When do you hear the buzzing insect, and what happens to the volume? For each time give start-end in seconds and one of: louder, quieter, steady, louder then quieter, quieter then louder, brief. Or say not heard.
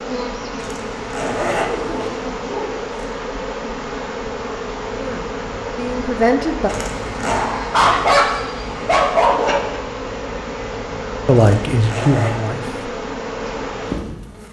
0.0-14.4 steady.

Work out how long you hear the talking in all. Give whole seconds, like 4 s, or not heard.
3 s.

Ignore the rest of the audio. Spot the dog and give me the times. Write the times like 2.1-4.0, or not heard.
1.6-2.8, 7.2-9.8.